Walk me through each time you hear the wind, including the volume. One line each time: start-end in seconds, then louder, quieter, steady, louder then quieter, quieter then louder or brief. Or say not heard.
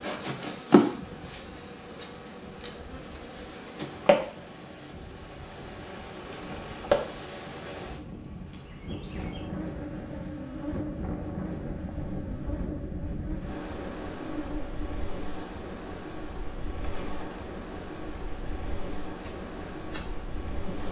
0.0-20.8 louder.